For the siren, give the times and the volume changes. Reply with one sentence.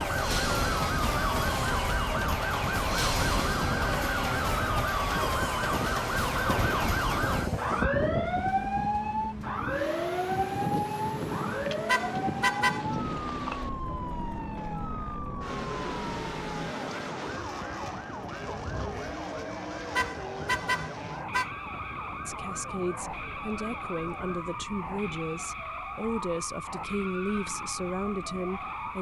You can hear the siren from 0.0 to 28.9 s, getting quieter.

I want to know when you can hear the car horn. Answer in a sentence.
You can hear the car horn from 11.8 to 12.8 s and from 19.9 to 21.5 s.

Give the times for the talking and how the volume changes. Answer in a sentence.
The talking can be heard from 22.2 to 28.9 s, at a steady volume.